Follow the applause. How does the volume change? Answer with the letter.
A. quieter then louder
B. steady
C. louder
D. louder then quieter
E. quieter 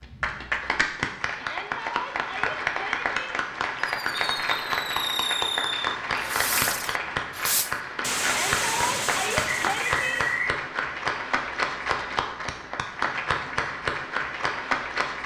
B.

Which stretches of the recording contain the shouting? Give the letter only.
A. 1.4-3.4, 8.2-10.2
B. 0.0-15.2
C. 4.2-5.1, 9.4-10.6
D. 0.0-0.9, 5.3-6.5
A.